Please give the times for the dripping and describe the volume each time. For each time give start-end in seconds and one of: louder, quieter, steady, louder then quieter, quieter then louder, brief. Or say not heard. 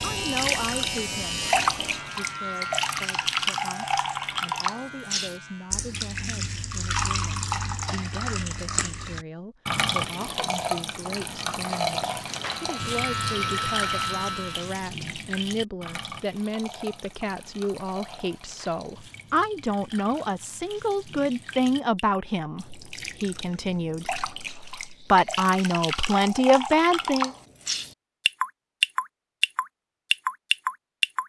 0.0-31.2 quieter then louder.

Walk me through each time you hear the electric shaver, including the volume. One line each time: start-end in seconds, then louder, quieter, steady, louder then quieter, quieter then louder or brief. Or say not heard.
0.0-5.9 quieter
12.5-14.8 brief.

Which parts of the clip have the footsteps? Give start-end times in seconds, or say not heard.
not heard.